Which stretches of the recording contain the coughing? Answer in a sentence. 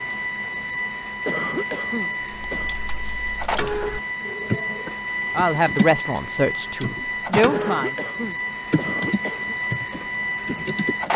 The coughing can be heard from 1.2 to 2.8 s and from 7.5 to 9.6 s.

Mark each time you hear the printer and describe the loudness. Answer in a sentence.
The printer can be heard from 0.0 to 11.1 s, at a steady volume.